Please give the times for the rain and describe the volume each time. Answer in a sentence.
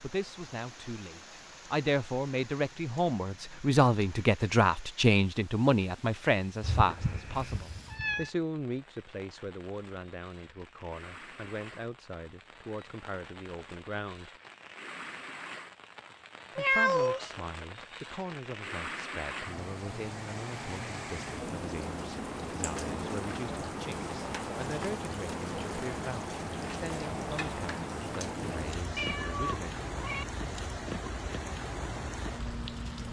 You can hear the rain from 0.0 to 33.0 s, getting louder.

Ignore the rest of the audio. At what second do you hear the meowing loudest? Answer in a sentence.
The volume of the meowing peaks at 17 seconds.